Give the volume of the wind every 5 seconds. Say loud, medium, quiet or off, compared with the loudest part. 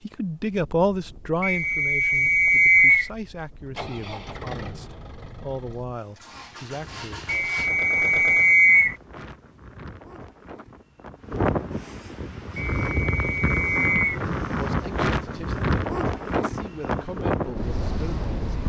quiet, quiet, loud, loud.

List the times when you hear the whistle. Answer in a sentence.
The whistle can be heard from 1.4 to 3.1 s, from 7.2 to 8.9 s and from 12.6 to 14.2 s.